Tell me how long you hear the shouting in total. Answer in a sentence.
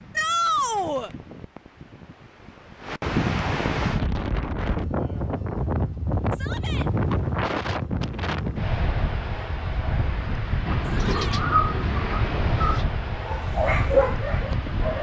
The shouting can be heard for 2 seconds in total.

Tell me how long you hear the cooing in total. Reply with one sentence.
You can hear the cooing for 2 seconds altogether.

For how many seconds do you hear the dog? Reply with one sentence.
The dog can be heard for 2 seconds in total.